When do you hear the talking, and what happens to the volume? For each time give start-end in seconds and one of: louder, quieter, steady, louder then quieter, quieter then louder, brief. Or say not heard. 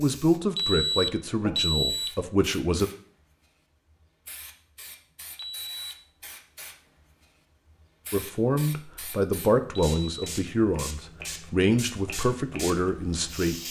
0.0-2.9 brief
8.1-13.6 steady.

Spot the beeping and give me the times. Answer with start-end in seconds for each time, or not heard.
0.6-2.1, 5.3-6.0, 9.8-10.3.